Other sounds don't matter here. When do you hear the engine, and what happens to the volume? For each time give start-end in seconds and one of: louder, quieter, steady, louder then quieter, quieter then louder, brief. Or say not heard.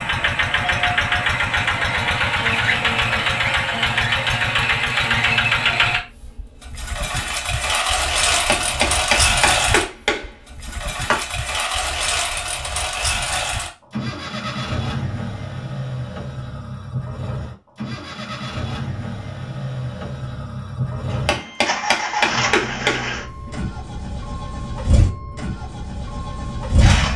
0.0-27.1 quieter.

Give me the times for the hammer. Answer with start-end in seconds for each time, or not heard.
8.3-11.2, 21.1-23.5.